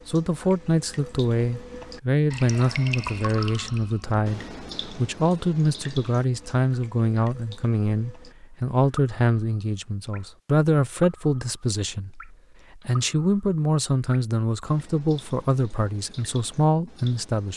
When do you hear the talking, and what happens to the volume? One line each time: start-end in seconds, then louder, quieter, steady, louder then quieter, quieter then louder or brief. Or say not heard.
0.1-17.5 steady.